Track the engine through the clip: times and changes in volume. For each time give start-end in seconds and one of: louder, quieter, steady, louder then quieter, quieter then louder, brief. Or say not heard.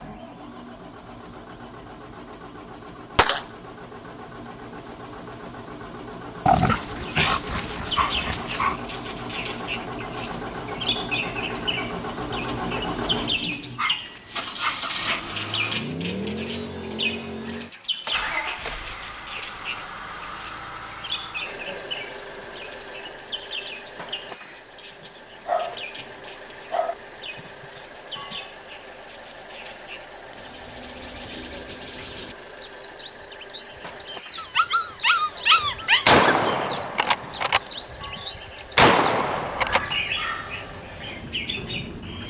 0.0-42.2 louder then quieter.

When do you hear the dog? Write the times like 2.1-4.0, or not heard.
6.5-8.8, 13.8-15.2, 25.0-26.9, 34.4-36.2.